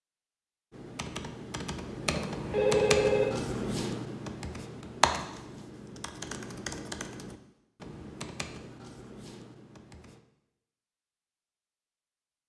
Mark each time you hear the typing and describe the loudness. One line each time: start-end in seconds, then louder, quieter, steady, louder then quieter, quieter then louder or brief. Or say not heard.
0.7-10.2 quieter.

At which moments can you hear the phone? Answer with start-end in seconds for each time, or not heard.
2.1-3.2.